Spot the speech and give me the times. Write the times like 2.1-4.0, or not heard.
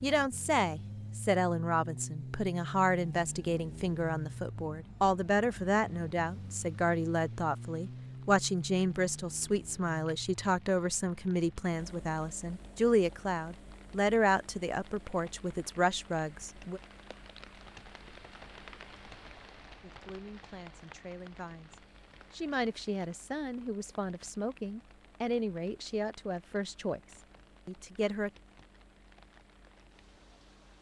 0.0-16.8, 19.8-28.3.